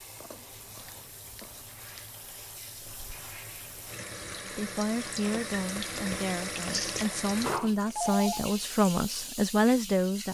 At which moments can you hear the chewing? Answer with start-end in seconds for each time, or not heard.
0.1-2.1, 6.6-7.0.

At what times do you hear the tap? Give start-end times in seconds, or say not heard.
0.0-10.2.